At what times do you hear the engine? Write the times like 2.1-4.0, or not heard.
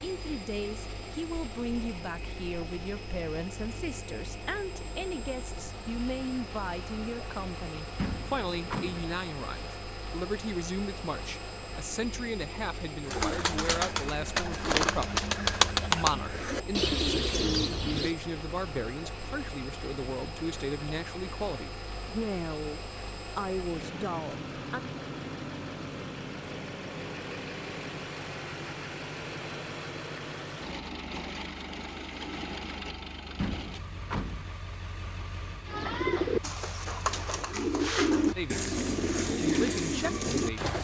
0.0-40.8.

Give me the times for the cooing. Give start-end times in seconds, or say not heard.
13.1-18.1, 35.6-40.8.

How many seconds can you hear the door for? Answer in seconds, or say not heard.
2 s.